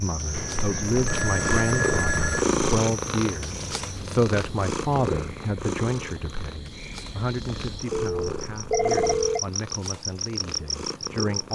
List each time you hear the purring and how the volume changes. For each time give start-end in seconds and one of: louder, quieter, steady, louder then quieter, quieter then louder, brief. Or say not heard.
0.0-11.5 quieter.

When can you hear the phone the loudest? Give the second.
9 s.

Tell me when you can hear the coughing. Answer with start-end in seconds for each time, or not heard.
not heard.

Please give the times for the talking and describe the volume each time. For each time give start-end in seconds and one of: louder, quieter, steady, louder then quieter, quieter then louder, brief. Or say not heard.
0.0-11.5 quieter.